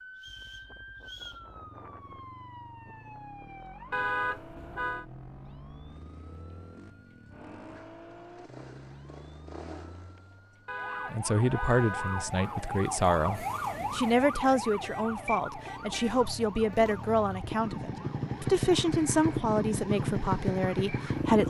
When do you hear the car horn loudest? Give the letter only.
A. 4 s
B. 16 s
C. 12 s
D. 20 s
A.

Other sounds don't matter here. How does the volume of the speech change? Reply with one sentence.
The volume of the speech stays about the same.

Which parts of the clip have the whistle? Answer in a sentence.
The whistle can be heard from 0.1 to 1.4 s.